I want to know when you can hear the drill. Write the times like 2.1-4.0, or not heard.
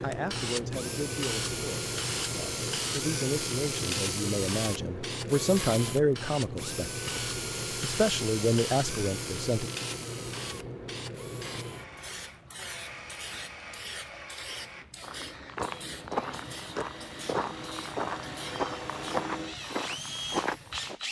0.0-21.0.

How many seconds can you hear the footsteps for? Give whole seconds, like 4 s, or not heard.
6 s.